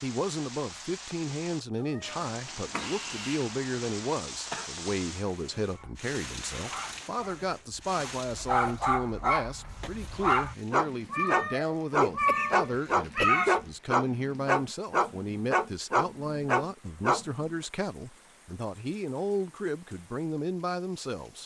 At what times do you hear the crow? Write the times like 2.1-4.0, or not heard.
not heard.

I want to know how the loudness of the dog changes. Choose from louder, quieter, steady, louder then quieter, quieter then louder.
louder.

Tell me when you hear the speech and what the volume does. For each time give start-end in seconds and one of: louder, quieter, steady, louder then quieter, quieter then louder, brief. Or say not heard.
0.0-21.4 steady.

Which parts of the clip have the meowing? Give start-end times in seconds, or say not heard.
1.9-3.5, 11.1-13.6.